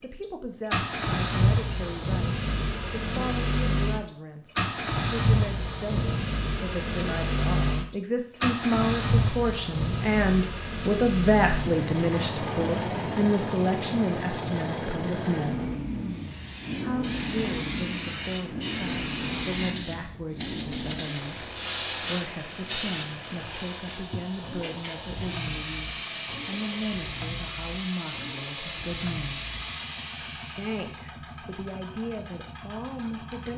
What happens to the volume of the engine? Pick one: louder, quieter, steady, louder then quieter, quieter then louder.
quieter.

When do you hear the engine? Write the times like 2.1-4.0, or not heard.
0.0-33.5.